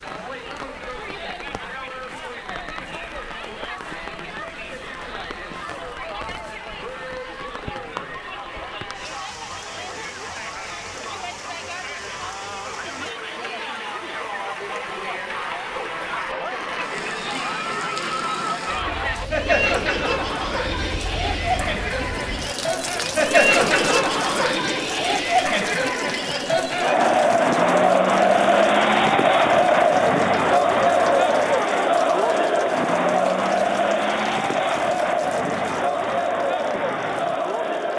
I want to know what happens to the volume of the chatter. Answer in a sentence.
The volume of the chatter goes up.